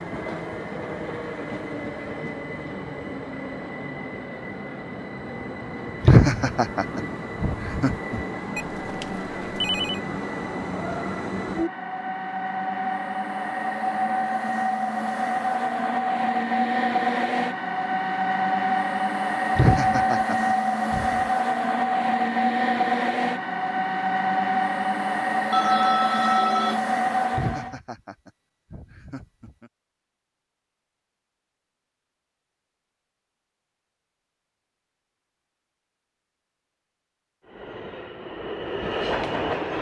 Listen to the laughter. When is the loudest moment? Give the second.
6 s.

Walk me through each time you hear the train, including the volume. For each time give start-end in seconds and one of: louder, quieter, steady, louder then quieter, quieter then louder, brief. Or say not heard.
0.0-27.8 louder
37.5-39.7 brief.